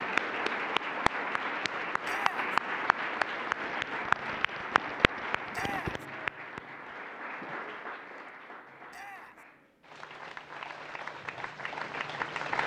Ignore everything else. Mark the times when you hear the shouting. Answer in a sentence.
The shouting can be heard from 2.0 to 2.5 s, from 5.5 to 6.0 s and from 8.9 to 9.4 s.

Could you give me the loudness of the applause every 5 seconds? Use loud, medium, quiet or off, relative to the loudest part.
loud, medium, medium.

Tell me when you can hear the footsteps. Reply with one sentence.
You can't hear the footsteps here.